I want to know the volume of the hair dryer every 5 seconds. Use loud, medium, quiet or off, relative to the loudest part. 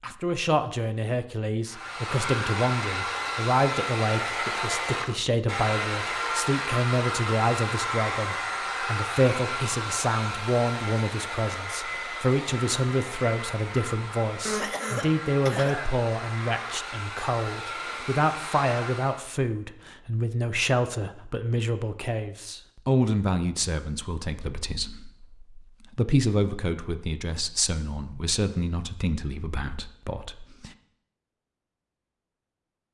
loud, loud, medium, medium, off, off, off.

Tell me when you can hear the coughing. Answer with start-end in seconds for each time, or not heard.
14.4-15.9.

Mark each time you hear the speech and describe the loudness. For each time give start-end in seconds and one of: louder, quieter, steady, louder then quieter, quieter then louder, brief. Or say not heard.
0.0-30.7 steady.